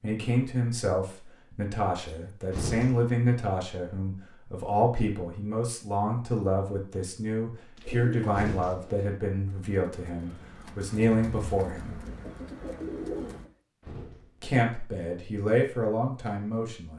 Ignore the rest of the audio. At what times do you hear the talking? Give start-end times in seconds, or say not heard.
0.0-12.0, 14.4-16.9.